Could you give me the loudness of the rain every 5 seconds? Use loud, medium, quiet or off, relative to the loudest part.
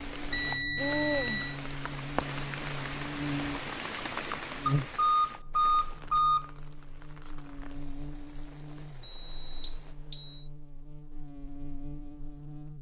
loud, quiet, off.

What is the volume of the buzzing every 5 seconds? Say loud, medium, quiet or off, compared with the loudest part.
loud, medium, medium.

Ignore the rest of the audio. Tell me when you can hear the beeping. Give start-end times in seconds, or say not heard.
0.3-1.6, 4.7-6.5, 9.0-10.4.